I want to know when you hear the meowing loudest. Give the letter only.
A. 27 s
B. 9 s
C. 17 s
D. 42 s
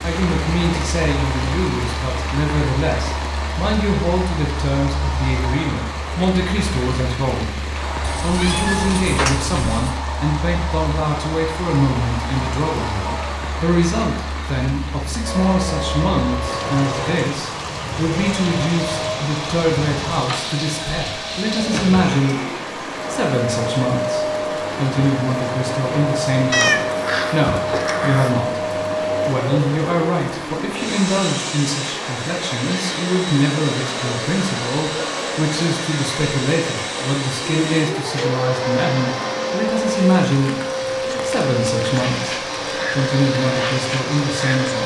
A.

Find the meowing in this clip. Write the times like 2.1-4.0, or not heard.
8.0-9.9, 26.5-28.4.